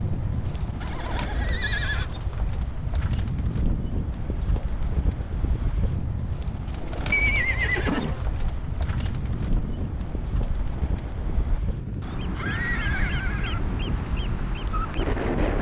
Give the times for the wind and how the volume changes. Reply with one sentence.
You can hear the wind from 0.0 to 15.5 s, at a steady volume.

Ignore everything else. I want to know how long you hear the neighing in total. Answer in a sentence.
You can hear the neighing for 4 seconds altogether.